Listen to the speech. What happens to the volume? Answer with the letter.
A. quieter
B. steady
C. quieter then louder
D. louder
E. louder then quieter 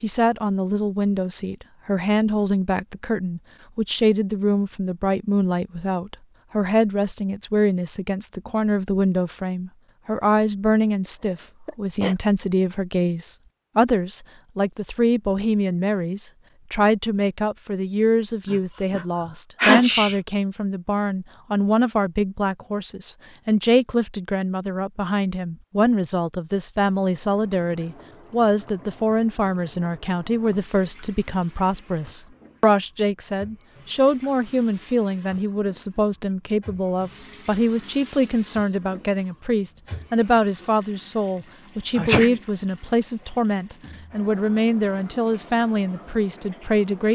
B.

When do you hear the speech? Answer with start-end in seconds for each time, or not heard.
0.0-47.1.